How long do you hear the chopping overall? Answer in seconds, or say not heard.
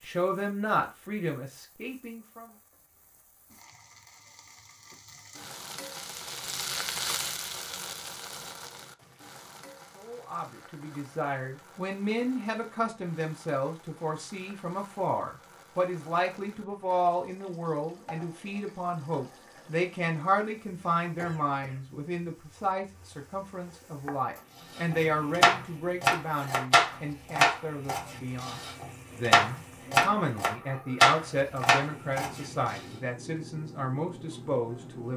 8 s.